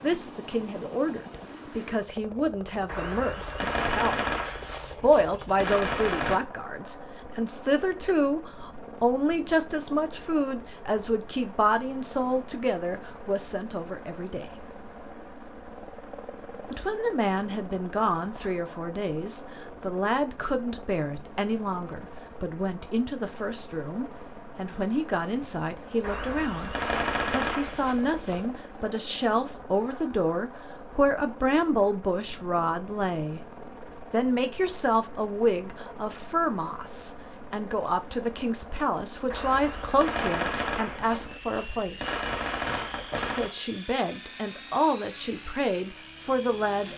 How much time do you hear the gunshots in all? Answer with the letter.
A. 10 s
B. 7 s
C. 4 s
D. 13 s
A.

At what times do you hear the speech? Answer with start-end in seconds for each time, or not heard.
0.0-14.5, 16.6-33.4, 34.1-42.2, 43.4-46.9.